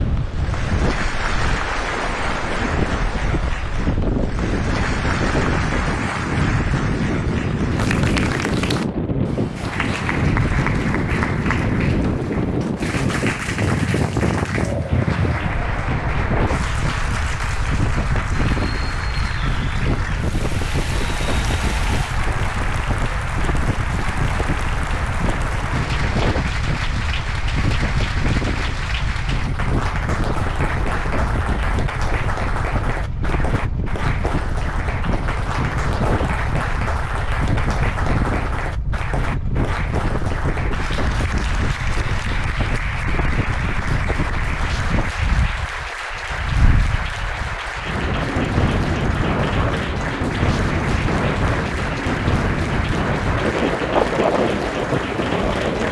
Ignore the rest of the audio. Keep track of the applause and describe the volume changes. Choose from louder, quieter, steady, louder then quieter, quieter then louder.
steady.